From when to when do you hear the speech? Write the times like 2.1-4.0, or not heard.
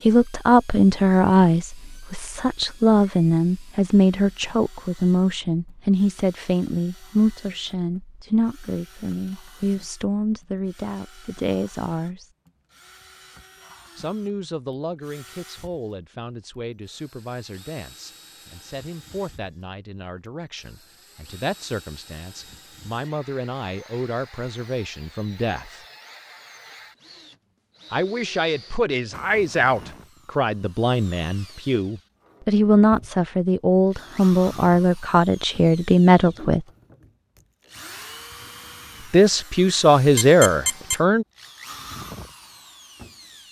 0.1-12.2, 13.9-25.8, 27.9-36.6, 39.1-41.2.